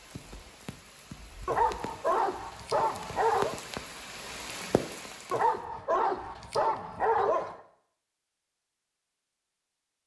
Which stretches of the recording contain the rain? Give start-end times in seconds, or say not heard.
0.0-5.5.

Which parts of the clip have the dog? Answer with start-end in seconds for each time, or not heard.
1.4-3.5, 5.3-7.5.